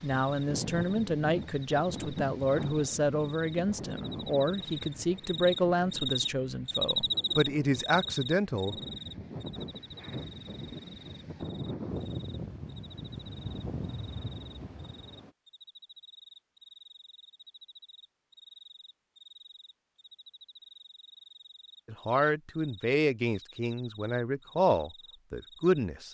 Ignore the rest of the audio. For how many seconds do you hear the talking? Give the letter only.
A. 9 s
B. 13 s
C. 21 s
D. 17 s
B.